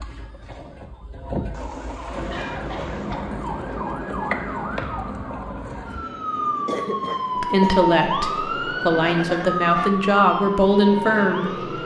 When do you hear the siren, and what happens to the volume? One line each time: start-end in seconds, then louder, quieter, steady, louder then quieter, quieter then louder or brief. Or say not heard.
0.0-11.8 louder.